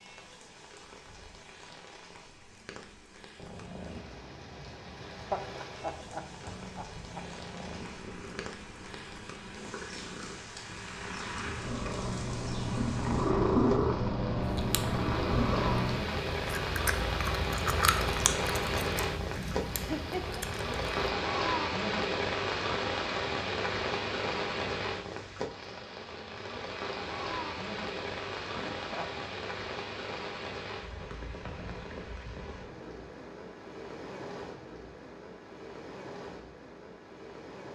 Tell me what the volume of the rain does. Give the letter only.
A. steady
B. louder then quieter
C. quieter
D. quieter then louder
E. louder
B.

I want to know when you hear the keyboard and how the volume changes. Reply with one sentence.
The keyboard can't be heard in this clip.